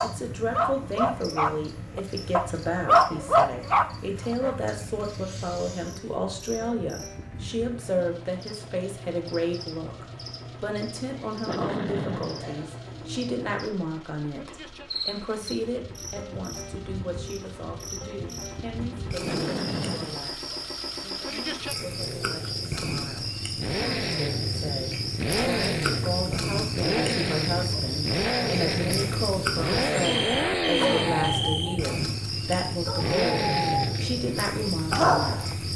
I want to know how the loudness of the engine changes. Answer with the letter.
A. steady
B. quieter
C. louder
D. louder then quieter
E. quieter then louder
C.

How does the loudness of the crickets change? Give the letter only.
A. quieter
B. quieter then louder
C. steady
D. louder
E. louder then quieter
D.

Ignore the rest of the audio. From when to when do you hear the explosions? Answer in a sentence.
You can hear the explosions from 11.4 to 12.6 s and from 19.2 to 20.4 s.